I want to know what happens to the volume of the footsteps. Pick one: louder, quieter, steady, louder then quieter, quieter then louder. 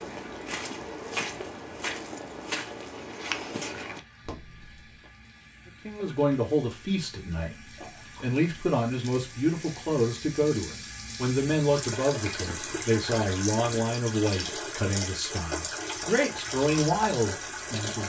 quieter.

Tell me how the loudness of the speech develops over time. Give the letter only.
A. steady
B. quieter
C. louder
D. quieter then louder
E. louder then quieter
A.